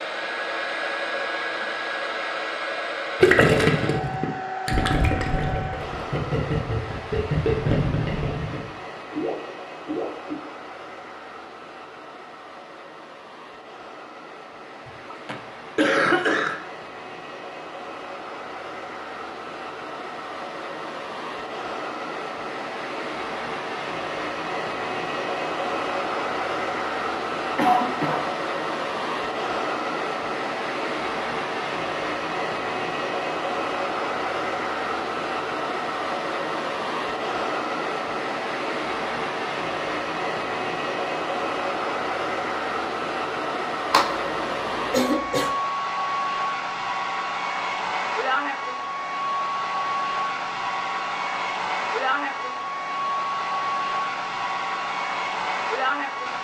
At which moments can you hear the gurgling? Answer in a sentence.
The gurgling can be heard from 3.2 to 10.3 s.